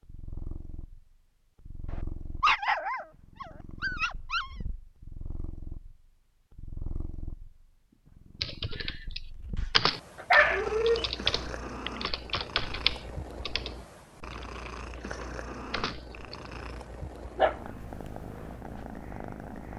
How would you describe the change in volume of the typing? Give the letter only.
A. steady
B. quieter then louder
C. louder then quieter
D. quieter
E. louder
D.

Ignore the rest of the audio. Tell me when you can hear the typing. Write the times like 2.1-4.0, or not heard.
8.4-16.4.